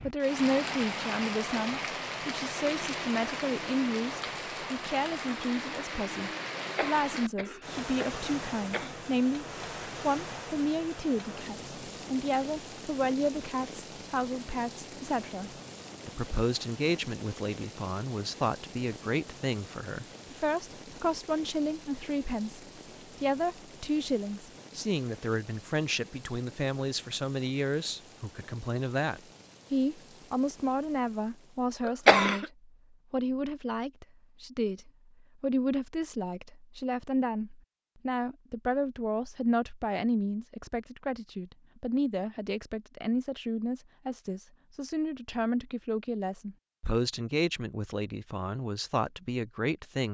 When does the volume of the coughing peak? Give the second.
32 s.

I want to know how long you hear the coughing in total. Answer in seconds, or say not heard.
3 s.